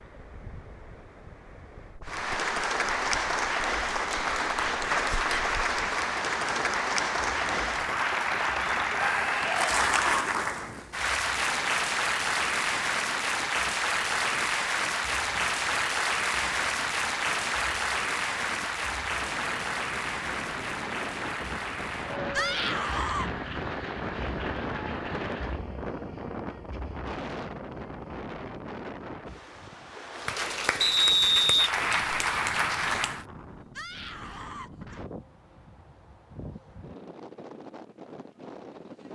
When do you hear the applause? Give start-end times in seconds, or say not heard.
2.0-25.6, 30.1-33.2.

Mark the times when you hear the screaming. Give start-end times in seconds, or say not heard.
8.9-10.3, 22.3-23.3, 33.8-35.0.